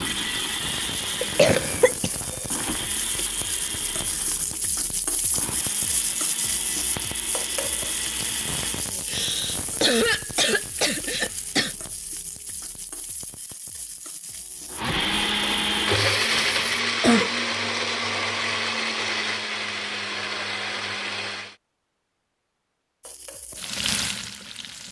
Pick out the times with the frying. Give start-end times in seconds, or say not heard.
0.0-16.8, 23.0-24.8.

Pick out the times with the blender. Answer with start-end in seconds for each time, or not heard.
0.0-8.9, 14.7-21.6.